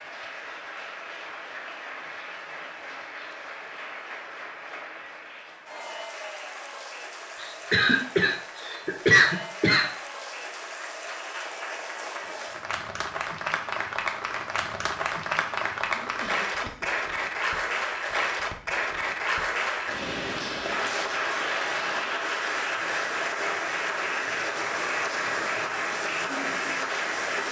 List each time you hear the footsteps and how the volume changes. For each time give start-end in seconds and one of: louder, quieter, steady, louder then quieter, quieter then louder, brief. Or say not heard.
not heard.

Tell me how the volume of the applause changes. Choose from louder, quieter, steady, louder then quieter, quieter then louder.
louder.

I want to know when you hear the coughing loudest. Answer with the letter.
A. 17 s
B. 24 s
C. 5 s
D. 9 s
D.